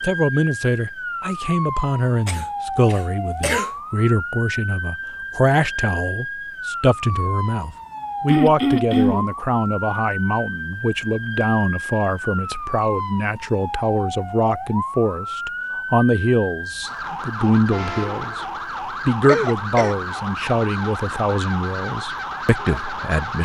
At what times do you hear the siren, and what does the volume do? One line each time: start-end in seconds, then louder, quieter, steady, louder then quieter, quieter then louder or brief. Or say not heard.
0.0-23.4 steady.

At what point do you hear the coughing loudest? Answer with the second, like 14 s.
9 s.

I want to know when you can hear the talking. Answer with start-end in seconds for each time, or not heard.
0.0-18.4, 19.1-23.4.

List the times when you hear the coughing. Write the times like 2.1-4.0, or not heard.
2.2-3.7, 8.2-9.3, 19.2-19.9.